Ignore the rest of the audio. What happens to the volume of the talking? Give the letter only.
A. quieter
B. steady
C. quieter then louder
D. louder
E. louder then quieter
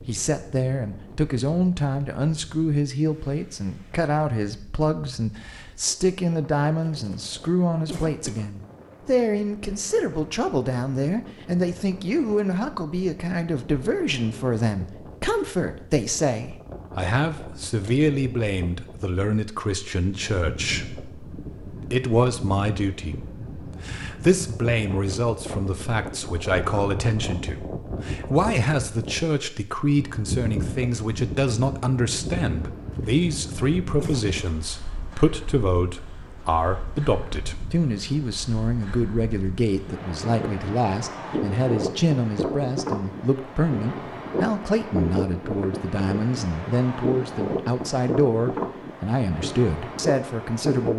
B.